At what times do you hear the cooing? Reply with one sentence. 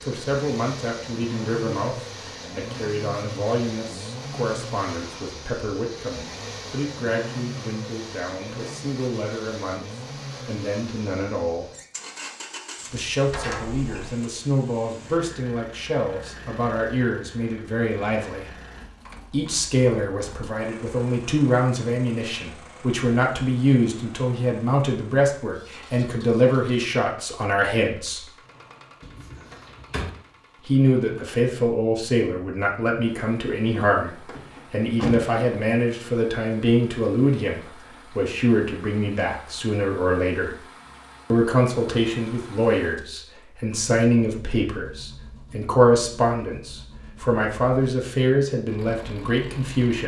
You can't hear the cooing here.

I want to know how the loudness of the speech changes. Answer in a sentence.
The loudness of the speech goes up.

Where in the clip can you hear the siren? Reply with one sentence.
You can't hear the siren here.